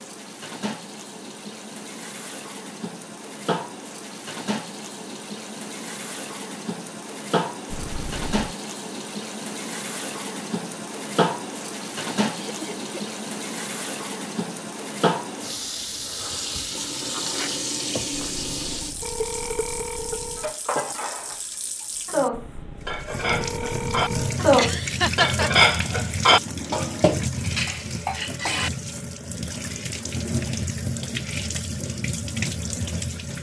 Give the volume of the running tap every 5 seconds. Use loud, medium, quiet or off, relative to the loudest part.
medium, loud, loud, loud, loud, loud, loud.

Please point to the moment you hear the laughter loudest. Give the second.
25 s.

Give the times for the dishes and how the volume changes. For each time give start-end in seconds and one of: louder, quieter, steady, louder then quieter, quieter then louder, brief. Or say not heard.
19.4-28.7 louder then quieter.